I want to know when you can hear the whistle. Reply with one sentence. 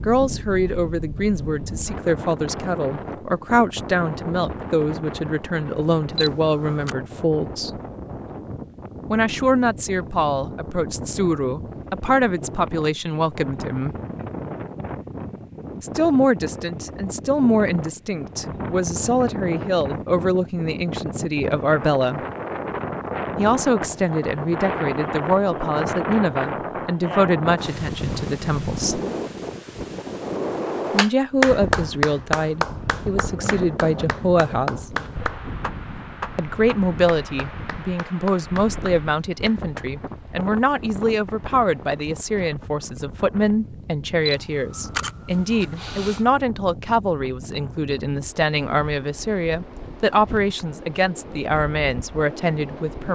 You can't hear the whistle here.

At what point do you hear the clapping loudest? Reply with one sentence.
The loudest moment of the clapping is at 32 seconds.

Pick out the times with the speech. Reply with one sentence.
You can hear the speech from 0.0 to 7.7 s, from 9.1 to 13.9 s, from 15.8 to 22.2 s, from 23.4 to 29.0 s, from 30.9 to 35.0 s and from 36.4 to 53.1 s.